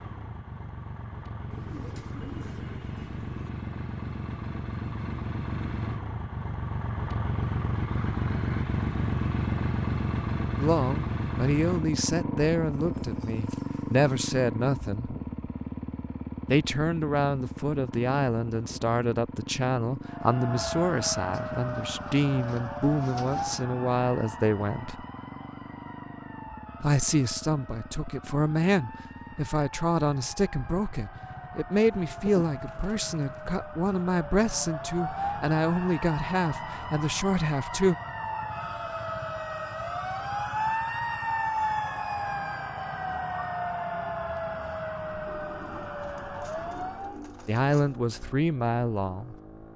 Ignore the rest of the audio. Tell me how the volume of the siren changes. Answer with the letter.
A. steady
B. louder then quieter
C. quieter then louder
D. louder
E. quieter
C.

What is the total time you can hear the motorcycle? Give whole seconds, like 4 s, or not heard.
50 s.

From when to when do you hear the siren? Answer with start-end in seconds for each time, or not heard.
20.1-47.2.